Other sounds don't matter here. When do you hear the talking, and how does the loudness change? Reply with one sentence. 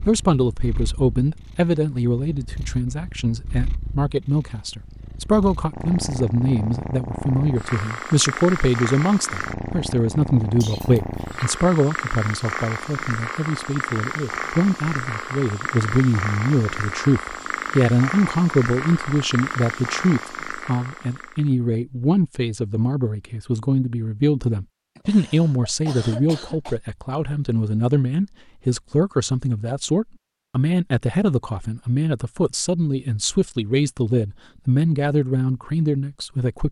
The talking can be heard from 0.0 to 36.6 s, at a steady volume.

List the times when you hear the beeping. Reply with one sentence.
You can't hear the beeping here.